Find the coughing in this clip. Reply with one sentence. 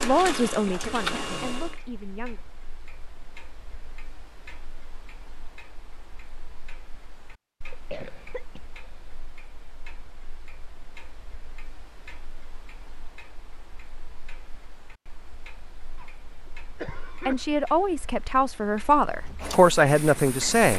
The coughing can be heard from 0.7 to 1.6 s, from 7.7 to 9.2 s and from 15.9 to 17.4 s.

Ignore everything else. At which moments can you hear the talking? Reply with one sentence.
You can hear the talking from 0.0 to 2.4 s and from 17.2 to 20.7 s.